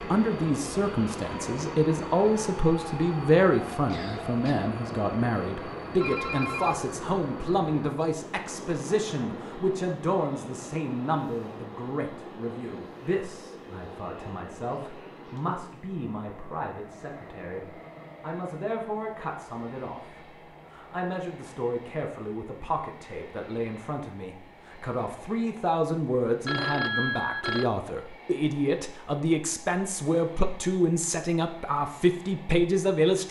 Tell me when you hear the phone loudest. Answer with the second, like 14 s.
27 s.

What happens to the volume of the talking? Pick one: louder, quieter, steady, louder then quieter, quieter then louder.
quieter then louder.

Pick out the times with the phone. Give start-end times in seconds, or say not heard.
6.0-6.8, 26.4-27.7.